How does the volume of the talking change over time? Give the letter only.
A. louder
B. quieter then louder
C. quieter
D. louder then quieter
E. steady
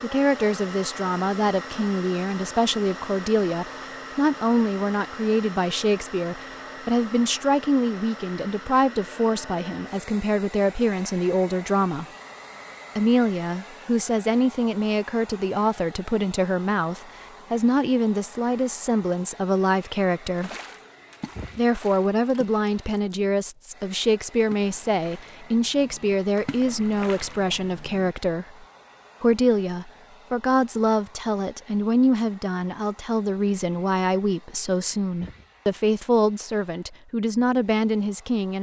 E.